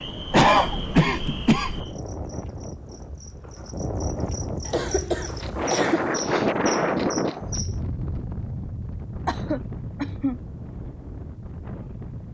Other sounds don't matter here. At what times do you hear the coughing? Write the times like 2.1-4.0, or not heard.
0.3-1.9, 4.7-6.2, 9.2-10.3.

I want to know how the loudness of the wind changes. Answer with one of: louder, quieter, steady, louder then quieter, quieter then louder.
louder then quieter.